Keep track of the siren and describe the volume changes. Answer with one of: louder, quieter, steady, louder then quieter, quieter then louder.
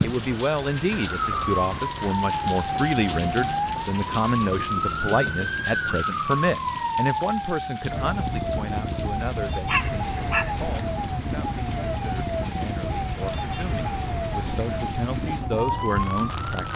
steady.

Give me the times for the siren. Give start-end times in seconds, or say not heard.
0.0-16.7.